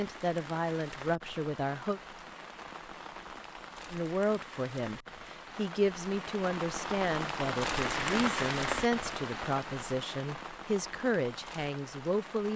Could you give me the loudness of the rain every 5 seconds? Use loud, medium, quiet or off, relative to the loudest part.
medium, loud, medium.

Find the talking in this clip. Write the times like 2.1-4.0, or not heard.
0.0-2.0, 3.9-12.5.